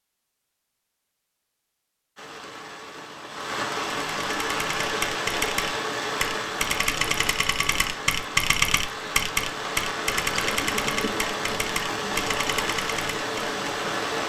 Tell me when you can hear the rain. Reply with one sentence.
You can hear the rain from 2.1 to 14.2 s.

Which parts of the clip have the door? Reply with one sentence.
You can't hear the door here.